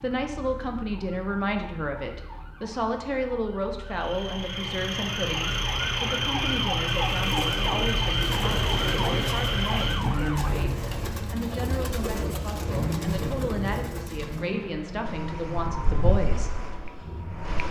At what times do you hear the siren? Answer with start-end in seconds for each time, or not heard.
0.0-10.6, 15.1-17.6.